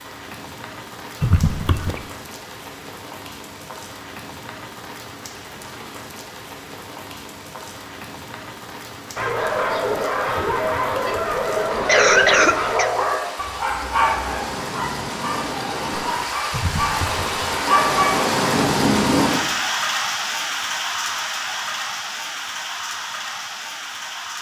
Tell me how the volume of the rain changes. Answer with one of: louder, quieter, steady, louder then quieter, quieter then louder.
louder.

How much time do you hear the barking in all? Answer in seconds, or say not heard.
10 s.